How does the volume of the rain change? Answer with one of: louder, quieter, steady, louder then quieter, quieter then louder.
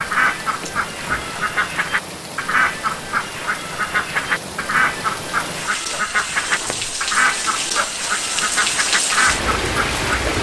louder.